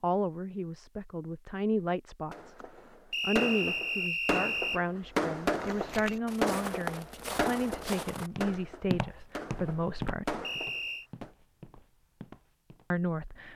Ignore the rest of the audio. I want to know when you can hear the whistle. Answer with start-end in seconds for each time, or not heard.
3.1-4.8, 10.4-11.1.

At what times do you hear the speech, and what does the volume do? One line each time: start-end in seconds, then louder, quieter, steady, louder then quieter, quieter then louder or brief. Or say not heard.
0.0-2.5 brief
3.2-10.4 steady
12.9-13.5 brief.